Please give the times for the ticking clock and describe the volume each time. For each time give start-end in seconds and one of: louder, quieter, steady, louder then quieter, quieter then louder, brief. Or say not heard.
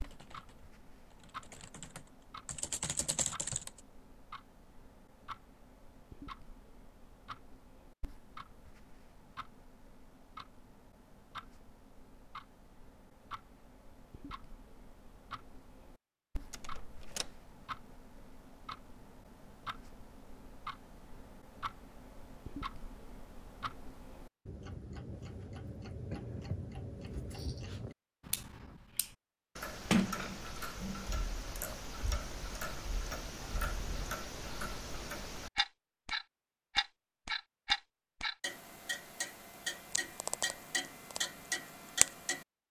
0.0-42.5 louder.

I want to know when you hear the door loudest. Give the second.
30 s.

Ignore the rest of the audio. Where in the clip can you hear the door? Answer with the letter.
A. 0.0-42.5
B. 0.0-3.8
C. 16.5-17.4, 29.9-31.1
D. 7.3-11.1
C.